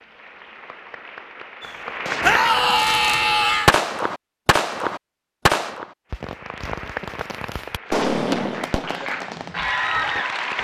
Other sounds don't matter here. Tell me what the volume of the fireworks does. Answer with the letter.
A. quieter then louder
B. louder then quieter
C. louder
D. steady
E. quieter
B.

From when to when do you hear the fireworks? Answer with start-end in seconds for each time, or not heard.
1.6-10.2.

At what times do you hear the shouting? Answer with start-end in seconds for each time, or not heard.
2.2-3.8.